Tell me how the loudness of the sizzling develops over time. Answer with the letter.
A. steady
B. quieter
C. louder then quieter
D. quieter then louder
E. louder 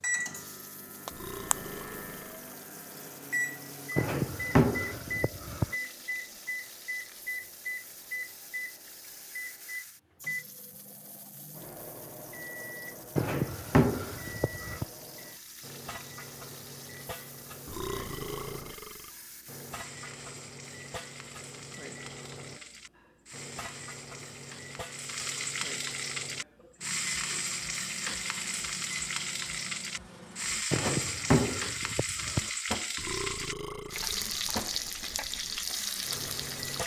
E.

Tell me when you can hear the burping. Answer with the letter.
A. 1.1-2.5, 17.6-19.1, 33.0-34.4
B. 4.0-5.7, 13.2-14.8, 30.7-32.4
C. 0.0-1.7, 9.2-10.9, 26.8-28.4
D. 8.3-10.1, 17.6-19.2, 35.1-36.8
A.